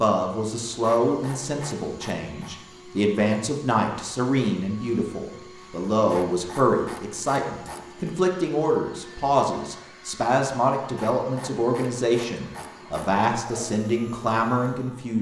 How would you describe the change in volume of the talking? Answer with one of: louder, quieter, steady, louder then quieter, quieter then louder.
steady.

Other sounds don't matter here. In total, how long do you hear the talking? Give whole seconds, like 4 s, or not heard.
15 s.